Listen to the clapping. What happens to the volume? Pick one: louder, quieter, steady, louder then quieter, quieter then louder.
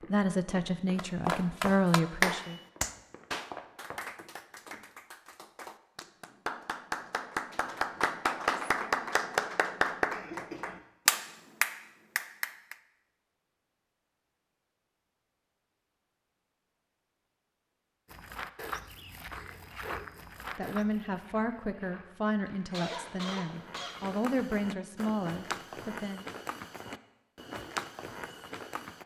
quieter then louder.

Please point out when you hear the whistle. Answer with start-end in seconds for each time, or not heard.
not heard.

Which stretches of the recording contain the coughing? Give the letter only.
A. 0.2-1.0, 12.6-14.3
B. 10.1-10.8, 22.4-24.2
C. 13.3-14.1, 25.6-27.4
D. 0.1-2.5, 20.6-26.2
B.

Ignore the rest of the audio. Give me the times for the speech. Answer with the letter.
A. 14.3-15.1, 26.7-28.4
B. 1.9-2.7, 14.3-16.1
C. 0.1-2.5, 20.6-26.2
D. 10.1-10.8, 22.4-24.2
C.